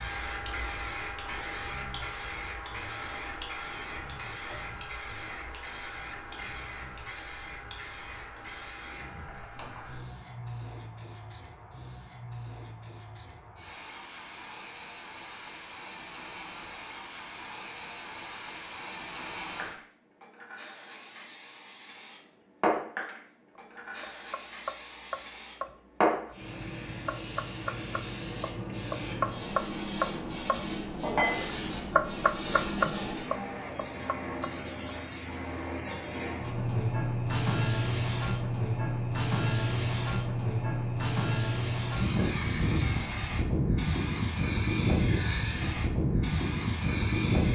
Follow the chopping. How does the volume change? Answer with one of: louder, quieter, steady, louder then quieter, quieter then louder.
louder.